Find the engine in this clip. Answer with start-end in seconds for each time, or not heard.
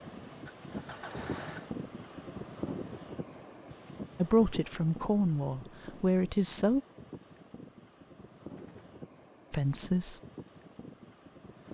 0.2-1.7.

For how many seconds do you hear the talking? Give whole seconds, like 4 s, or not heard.
3 s.